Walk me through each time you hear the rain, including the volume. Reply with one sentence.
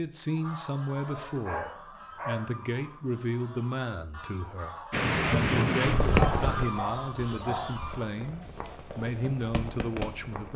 The rain can be heard from 4.9 to 10.5 s, getting quieter.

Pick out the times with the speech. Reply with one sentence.
The speech can be heard from 0.0 to 10.5 s.